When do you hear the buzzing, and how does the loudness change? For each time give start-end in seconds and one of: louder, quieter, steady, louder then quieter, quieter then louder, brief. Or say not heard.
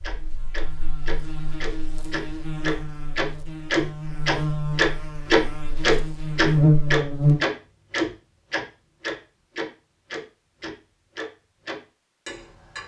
0.0-7.4 louder.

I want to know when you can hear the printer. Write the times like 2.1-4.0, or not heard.
not heard.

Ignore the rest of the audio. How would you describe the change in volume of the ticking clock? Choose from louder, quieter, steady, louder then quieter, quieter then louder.
louder then quieter.